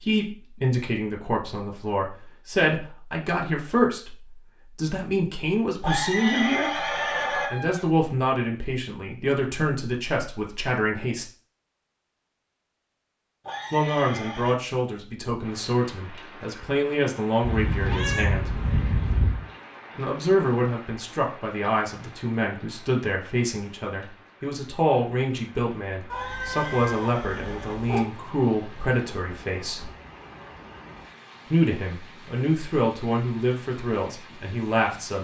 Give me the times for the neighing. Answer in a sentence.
The neighing can be heard from 5.8 to 7.5 s, from 13.4 to 14.6 s and from 26.1 to 27.8 s.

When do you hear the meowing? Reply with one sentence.
The meowing can be heard from 6.8 to 7.8 s, from 17.4 to 19.4 s and from 26.1 to 28.1 s.